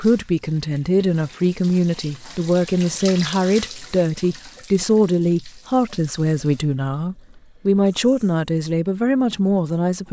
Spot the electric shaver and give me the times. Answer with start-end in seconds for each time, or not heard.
not heard.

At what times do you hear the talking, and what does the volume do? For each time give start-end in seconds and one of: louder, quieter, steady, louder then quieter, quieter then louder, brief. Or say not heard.
0.0-10.0 steady.